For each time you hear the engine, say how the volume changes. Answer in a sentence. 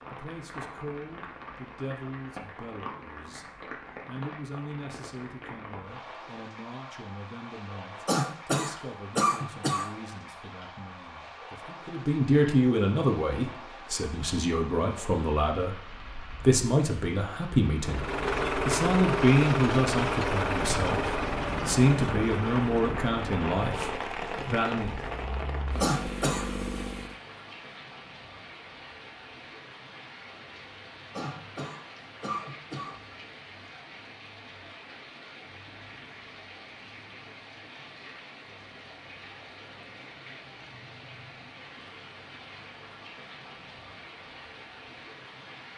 The engine can be heard from 17.8 to 27.1 s, getting quieter.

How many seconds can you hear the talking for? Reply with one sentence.
You can hear the talking for 24 seconds altogether.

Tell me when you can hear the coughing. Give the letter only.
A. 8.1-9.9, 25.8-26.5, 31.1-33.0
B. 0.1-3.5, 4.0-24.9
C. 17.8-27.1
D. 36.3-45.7
A.